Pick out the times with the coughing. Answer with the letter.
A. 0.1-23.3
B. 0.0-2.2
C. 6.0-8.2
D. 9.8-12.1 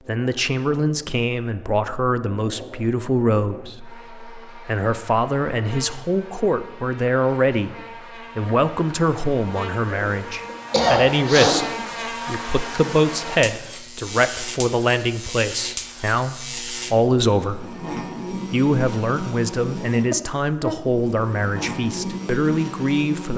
D.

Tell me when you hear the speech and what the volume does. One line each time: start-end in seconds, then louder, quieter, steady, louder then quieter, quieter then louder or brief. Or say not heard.
0.1-23.3 steady.